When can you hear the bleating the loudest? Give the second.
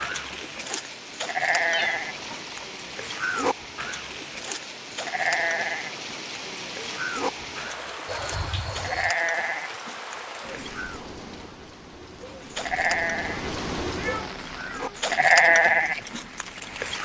15 s.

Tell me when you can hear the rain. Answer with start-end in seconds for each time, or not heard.
0.0-17.0.